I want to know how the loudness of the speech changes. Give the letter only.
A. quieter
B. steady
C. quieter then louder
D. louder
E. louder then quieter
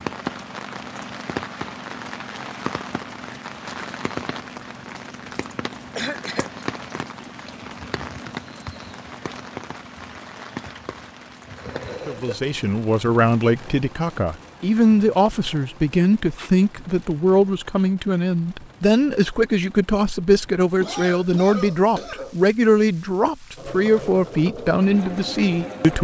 B.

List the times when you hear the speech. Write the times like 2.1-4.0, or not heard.
12.1-25.9.